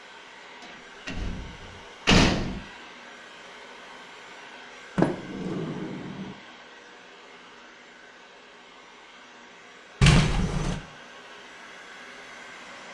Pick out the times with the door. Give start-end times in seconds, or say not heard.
1.1-2.6, 5.0-6.3, 10.0-10.8.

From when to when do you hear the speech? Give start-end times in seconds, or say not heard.
not heard.